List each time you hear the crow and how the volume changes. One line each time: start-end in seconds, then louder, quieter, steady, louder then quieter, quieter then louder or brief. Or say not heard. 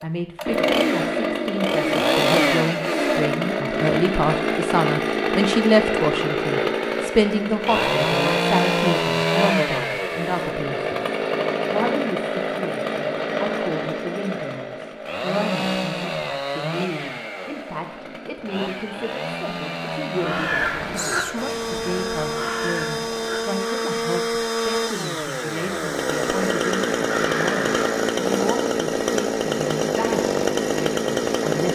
20.1-28.1 quieter then louder.